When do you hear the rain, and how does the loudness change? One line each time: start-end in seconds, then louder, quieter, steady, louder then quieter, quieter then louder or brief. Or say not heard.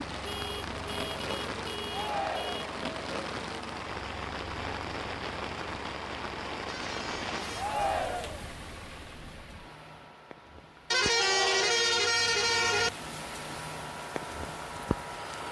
0.0-15.4 quieter then louder.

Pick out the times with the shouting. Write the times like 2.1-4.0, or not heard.
1.9-2.7, 7.5-8.4, 11.1-11.8.